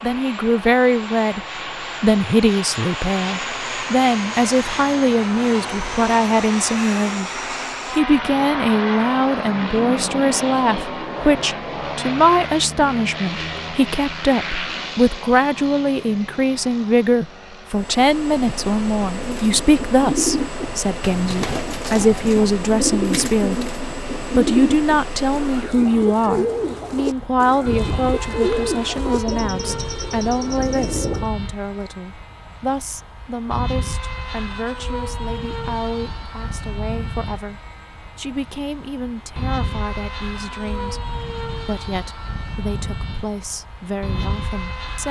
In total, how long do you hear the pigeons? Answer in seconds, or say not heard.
12 s.